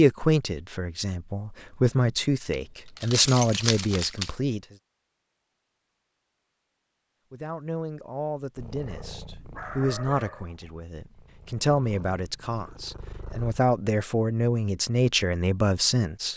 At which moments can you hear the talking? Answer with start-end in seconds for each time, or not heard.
0.0-4.6, 7.3-16.3.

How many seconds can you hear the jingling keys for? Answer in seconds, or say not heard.
2 s.